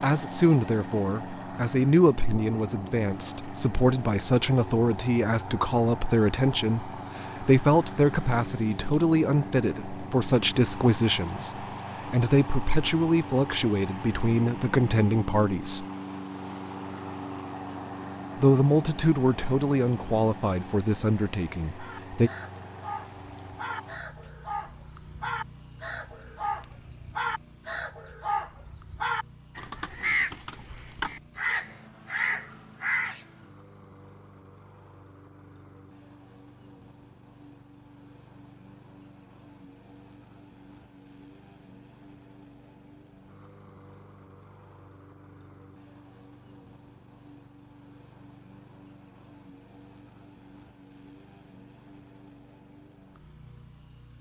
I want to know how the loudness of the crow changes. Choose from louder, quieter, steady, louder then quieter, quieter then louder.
louder.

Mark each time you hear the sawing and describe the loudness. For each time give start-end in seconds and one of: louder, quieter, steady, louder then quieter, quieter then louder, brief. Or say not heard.
not heard.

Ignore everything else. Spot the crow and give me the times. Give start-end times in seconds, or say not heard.
21.8-33.2.